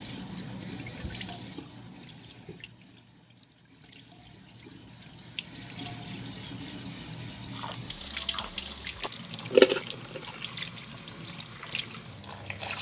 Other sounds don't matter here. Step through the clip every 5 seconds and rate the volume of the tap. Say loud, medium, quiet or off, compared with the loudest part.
medium, loud, loud.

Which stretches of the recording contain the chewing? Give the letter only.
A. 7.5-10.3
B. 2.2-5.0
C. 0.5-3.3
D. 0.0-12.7
A.